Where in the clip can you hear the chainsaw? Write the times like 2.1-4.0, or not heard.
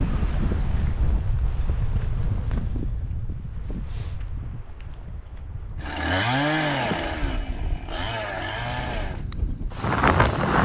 5.8-9.2.